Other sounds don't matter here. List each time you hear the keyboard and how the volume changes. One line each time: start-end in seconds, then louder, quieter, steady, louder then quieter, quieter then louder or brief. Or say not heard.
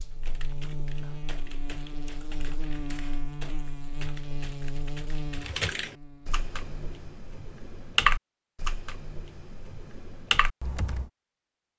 0.2-11.1 louder then quieter.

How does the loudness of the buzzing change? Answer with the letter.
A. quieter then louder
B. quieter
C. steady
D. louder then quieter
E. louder
B.